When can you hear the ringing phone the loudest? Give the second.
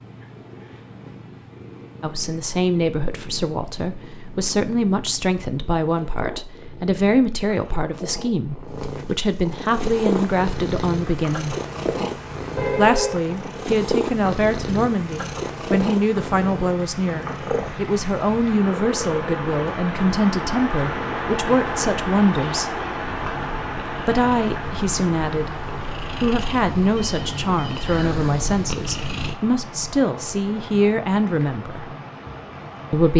13 s.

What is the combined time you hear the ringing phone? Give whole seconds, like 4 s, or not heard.
2 s.